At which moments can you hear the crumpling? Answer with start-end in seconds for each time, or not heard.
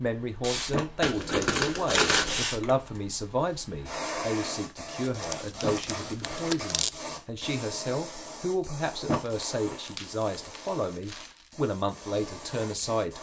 1.0-2.5, 5.2-6.9, 9.2-11.4.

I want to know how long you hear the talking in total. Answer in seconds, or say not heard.
13 s.